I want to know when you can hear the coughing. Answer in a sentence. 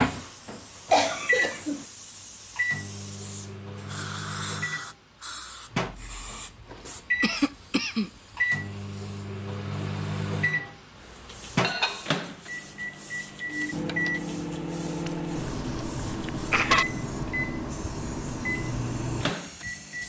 You can hear the coughing from 0.9 to 1.9 s, from 7.2 to 8.1 s and from 15.1 to 16.9 s.